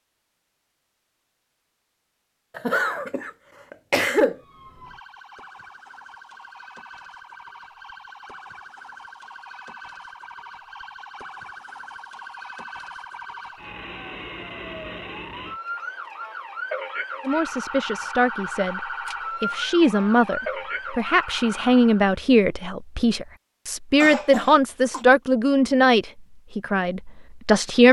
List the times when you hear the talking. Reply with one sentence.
You can hear the talking from 17.2 to 27.8 s.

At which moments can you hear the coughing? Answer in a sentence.
The coughing can be heard from 2.5 to 4.3 s and from 24.0 to 25.1 s.